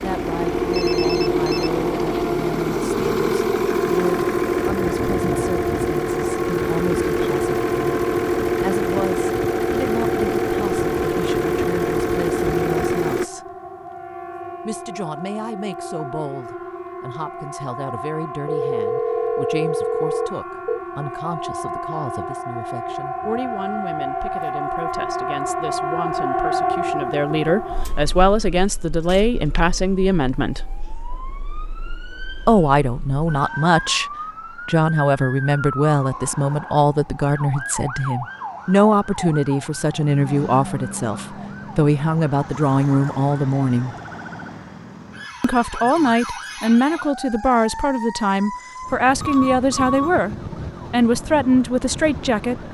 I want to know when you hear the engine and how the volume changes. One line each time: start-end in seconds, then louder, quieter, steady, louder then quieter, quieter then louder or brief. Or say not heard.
0.0-13.2 steady.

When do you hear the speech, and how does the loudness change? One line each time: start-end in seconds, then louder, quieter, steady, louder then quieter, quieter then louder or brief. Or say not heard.
0.0-13.4 steady
14.7-30.6 louder
32.5-34.0 brief
34.6-44.0 steady
45.4-52.6 steady.